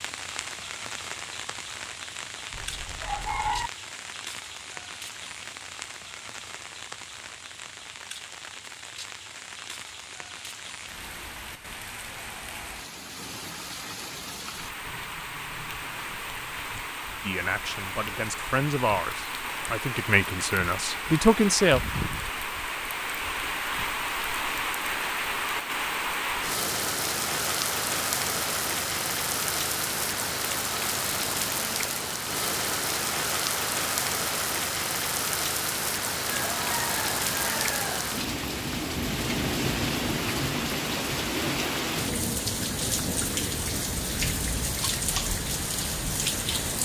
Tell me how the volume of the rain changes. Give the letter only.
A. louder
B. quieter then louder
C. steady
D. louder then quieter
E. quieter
A.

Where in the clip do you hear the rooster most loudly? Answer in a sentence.
The volume of the rooster peaks at 3 seconds.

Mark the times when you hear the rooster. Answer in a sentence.
You can hear the rooster from 2.5 to 3.7 s and from 36.2 to 38.3 s.